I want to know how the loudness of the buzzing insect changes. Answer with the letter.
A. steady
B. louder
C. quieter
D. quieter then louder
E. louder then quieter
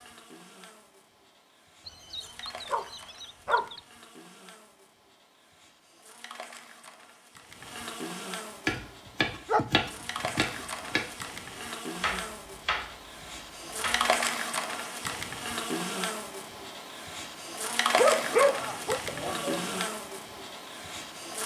B.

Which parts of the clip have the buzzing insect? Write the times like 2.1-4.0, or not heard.
0.0-21.4.